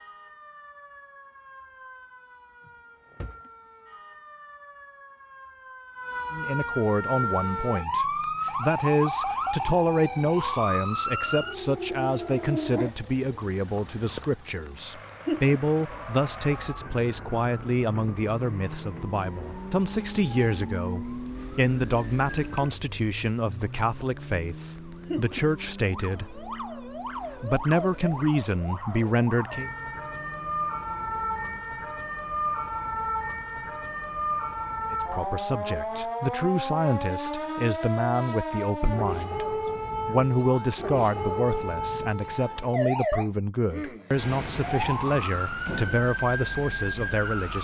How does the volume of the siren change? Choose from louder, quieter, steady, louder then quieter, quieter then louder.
quieter then louder.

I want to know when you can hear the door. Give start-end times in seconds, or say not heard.
2.6-3.5.